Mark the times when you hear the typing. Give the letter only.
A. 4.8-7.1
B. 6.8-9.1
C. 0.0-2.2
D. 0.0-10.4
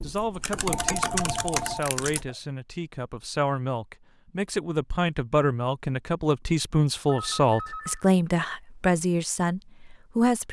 C.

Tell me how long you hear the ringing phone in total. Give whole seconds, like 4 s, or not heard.
3 s.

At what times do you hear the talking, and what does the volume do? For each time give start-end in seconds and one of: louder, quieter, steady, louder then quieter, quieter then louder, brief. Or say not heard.
0.0-10.4 louder.